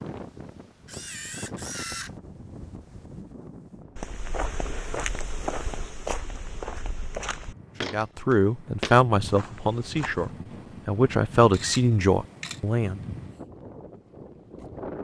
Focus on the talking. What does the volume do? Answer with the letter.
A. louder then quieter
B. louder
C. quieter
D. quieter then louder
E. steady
D.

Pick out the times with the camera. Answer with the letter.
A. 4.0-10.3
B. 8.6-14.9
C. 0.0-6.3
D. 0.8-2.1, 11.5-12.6
D.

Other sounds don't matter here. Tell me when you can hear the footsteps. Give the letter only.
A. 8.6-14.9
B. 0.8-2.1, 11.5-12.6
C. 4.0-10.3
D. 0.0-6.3
C.